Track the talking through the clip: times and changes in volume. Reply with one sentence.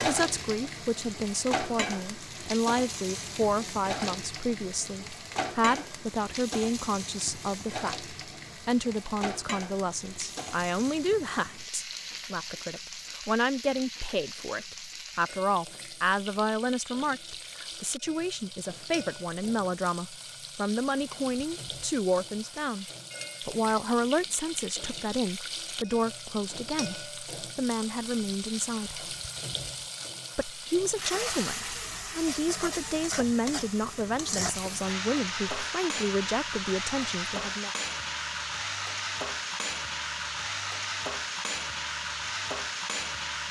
You can hear the talking from 0.0 to 29.1 s, at a steady volume; and from 30.4 to 37.7 s, at a steady volume.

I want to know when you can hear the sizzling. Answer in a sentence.
The sizzling can be heard from 0.0 to 43.4 s.